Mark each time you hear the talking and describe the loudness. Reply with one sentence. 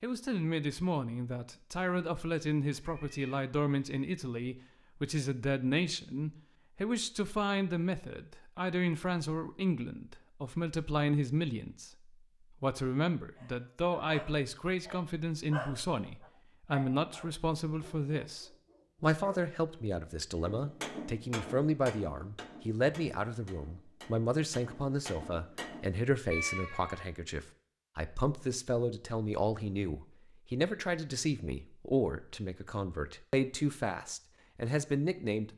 The talking can be heard from 0.0 to 35.5 s, at a steady volume.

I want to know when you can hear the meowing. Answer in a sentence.
You can hear the meowing from 2.8 to 3.4 s and from 26.3 to 27.1 s.